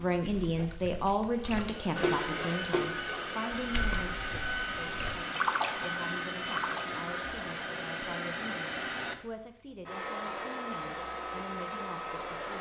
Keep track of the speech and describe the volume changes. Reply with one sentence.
The volume of the speech goes down.